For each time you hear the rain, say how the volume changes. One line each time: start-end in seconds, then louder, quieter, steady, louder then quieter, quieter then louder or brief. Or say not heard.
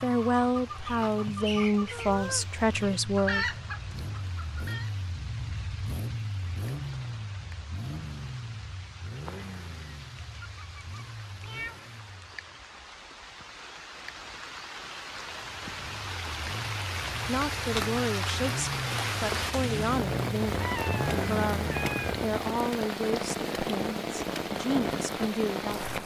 0.0-26.0 louder.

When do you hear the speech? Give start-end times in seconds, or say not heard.
0.0-3.5, 17.2-26.0.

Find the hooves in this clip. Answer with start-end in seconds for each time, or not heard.
not heard.